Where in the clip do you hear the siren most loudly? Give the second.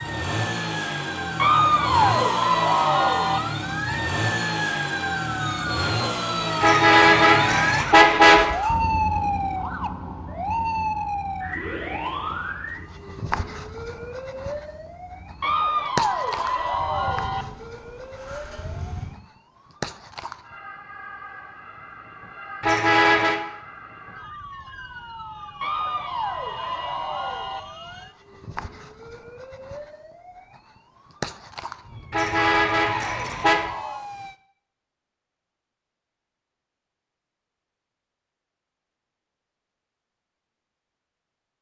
9 s.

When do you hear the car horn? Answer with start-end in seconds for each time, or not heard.
6.6-8.4, 22.6-23.4, 32.1-33.6.